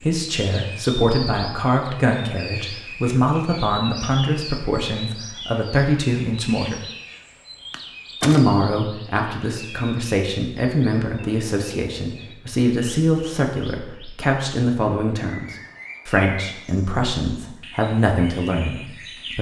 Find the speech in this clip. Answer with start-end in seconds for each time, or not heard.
0.0-6.8, 8.2-19.3.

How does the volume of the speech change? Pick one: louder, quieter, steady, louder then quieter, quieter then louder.
steady.